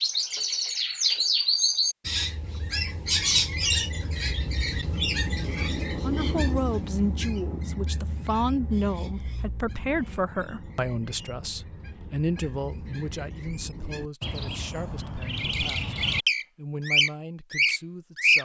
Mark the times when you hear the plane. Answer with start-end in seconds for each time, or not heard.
not heard.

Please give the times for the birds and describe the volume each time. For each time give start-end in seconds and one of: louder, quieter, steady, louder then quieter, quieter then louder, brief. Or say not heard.
0.0-18.4 quieter then louder.